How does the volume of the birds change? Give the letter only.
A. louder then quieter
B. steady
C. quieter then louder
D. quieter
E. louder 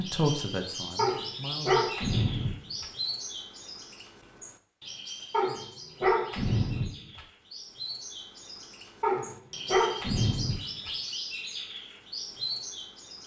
C.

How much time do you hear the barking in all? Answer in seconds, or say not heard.
6 s.